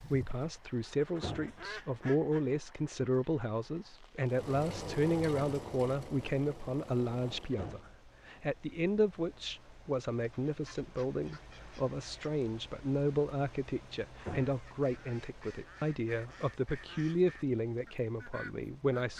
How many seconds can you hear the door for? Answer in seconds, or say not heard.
2 s.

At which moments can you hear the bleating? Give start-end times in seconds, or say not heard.
not heard.